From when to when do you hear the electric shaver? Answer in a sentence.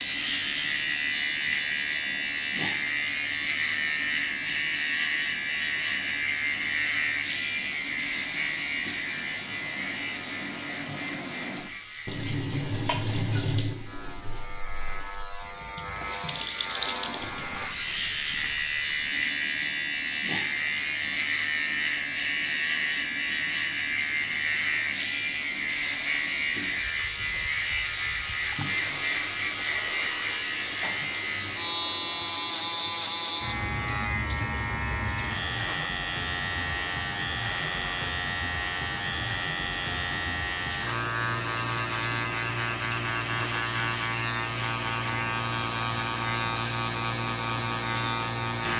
You can hear the electric shaver from 0.0 to 48.7 s.